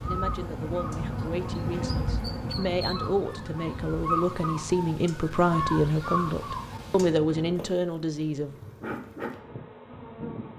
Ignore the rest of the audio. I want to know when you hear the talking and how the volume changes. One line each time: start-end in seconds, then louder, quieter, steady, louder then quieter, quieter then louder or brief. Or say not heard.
0.0-8.6 louder.